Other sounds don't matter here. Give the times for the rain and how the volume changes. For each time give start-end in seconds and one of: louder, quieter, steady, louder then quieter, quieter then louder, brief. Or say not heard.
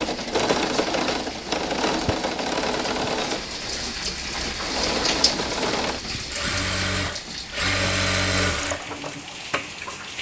0.0-10.1 louder then quieter.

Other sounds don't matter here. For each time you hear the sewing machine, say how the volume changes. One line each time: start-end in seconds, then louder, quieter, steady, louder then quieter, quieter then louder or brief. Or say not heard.
0.0-10.0 steady.